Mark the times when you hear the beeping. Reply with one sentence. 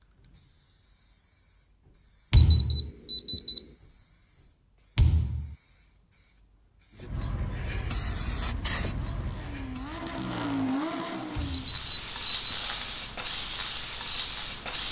The beeping can be heard from 2.4 to 3.6 s and from 11.5 to 12.8 s.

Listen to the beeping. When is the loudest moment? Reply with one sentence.
The volume of the beeping peaks at 3 seconds.